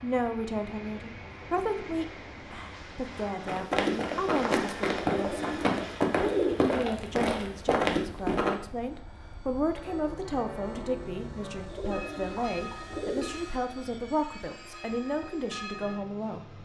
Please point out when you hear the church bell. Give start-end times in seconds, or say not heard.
9.8-16.0.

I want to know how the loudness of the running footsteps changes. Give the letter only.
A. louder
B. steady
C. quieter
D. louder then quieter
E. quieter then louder
B.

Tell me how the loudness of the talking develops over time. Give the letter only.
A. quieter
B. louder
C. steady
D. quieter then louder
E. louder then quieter
C.